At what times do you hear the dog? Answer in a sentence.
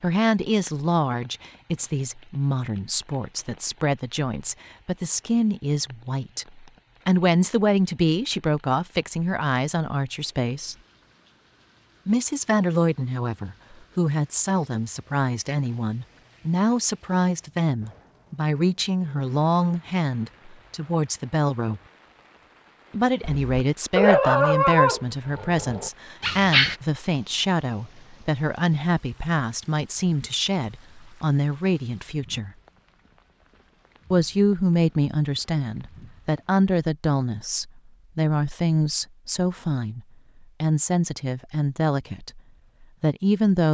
You can hear the dog from 23.2 to 26.8 s.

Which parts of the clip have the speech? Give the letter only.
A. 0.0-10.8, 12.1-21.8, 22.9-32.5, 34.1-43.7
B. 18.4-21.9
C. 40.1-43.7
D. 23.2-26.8
A.